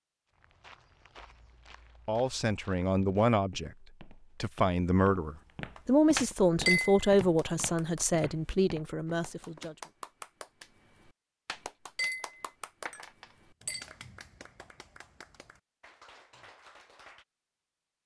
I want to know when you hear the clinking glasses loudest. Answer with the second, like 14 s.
7 s.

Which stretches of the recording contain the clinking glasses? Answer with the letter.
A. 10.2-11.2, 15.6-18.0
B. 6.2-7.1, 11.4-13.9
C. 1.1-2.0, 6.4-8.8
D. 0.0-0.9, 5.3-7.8
B.